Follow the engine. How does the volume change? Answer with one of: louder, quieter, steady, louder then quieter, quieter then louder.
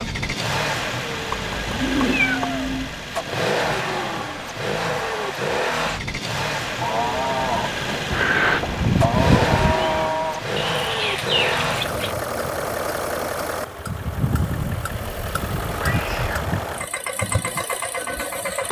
steady.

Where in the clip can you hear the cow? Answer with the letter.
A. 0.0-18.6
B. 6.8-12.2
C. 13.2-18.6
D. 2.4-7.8
B.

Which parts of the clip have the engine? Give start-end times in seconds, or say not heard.
0.0-18.6.